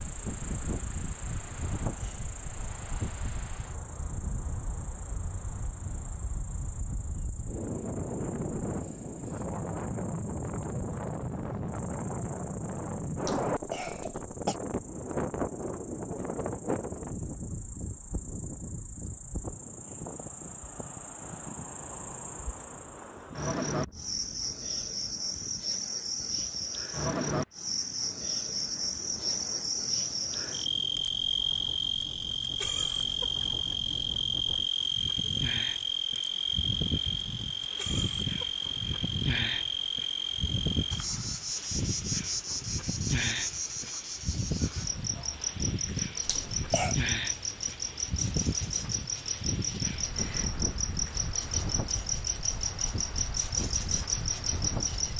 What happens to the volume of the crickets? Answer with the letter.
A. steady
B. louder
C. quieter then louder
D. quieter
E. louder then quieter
B.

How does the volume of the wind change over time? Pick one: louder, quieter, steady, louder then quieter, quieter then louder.
quieter then louder.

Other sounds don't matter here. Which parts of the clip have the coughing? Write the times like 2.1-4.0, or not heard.
13.2-14.6, 46.2-47.0.